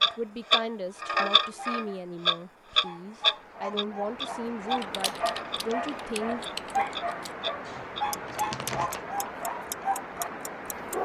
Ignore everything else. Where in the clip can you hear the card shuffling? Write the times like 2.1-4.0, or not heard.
7.7-9.1.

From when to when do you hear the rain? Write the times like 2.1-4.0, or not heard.
0.0-11.0.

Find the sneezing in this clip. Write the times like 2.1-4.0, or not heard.
not heard.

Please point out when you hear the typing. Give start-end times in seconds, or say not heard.
4.8-7.3.